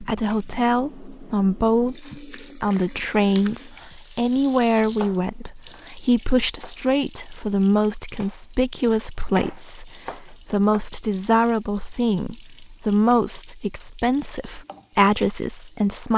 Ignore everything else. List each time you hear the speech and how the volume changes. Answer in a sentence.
You can hear the speech from 0.0 to 16.1 s, at a steady volume.